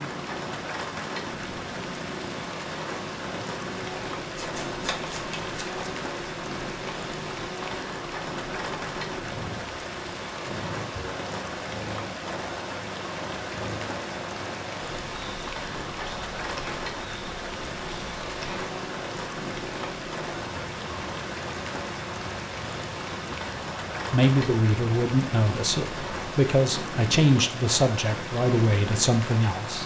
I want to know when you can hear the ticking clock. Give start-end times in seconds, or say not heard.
not heard.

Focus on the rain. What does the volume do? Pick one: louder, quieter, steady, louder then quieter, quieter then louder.
steady.